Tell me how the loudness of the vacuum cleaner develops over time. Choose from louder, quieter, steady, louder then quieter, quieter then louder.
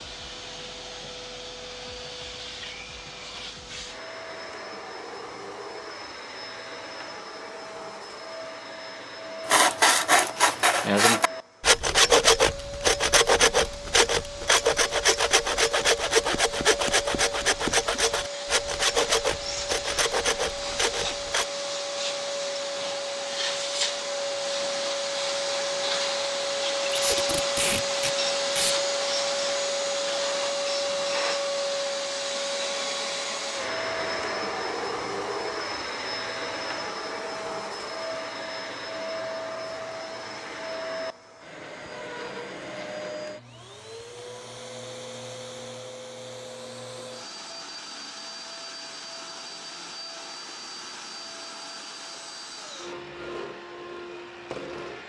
louder then quieter.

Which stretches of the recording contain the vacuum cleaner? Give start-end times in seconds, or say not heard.
0.0-55.0.